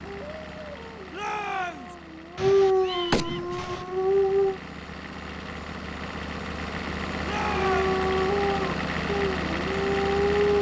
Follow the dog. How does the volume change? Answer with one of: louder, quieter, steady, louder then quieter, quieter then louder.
louder.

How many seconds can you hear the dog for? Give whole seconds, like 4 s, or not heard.
8 s.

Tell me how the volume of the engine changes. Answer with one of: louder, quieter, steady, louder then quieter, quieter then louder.
louder.